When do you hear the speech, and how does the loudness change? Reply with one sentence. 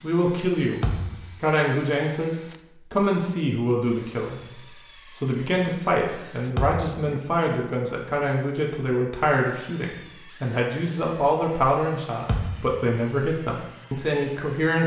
You can hear the speech from 0.0 to 14.8 s, at a steady volume.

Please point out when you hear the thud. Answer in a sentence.
The thud can be heard from 0.8 to 1.4 s, from 6.5 to 7.0 s and from 12.2 to 12.8 s.